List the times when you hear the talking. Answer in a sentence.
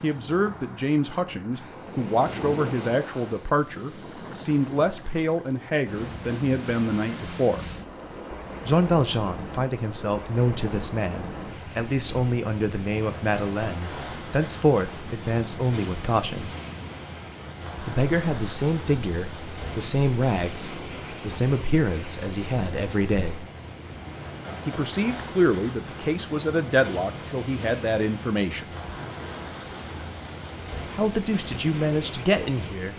You can hear the talking from 0.0 to 7.6 s, from 8.7 to 16.6 s, from 17.8 to 23.5 s, from 24.6 to 28.6 s and from 30.9 to 32.9 s.